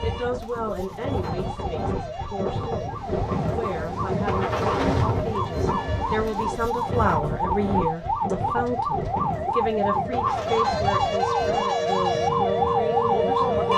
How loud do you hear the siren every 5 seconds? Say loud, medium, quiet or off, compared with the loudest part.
quiet, medium, loud.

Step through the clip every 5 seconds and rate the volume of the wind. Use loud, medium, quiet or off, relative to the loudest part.
loud, loud, medium.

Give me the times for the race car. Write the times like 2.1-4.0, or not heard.
2.9-6.5.